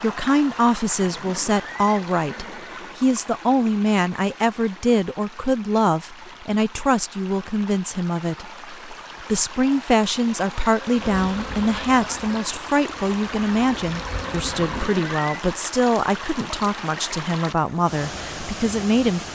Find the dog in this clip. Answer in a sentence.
The dog can't be heard in this clip.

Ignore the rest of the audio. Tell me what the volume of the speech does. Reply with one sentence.
The loudness of the speech stays about the same.